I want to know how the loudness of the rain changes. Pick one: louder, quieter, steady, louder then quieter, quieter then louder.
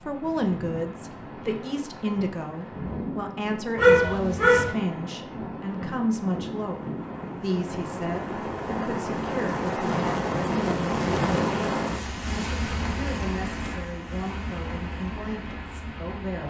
louder then quieter.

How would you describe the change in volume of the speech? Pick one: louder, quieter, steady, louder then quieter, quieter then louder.
quieter.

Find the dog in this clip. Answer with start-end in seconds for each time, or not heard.
3.8-4.7.